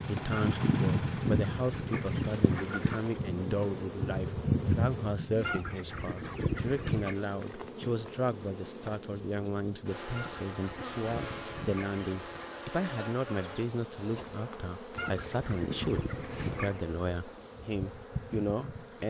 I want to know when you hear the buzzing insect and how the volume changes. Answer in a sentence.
You can hear the buzzing insect from 0.0 to 19.0 s, getting quieter.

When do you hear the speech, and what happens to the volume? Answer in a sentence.
You can hear the speech from 0.1 to 19.0 s, at a steady volume.